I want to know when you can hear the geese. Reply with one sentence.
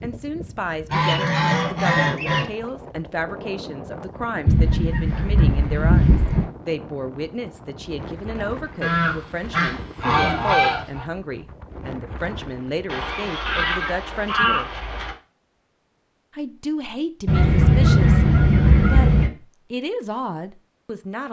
You can hear the geese from 0.9 to 2.5 s, from 4.5 to 6.5 s, from 8.8 to 11.1 s, from 12.8 to 15.2 s and from 17.2 to 19.3 s.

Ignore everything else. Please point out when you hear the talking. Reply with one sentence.
The talking can be heard from 0.0 to 14.7 s and from 16.4 to 21.2 s.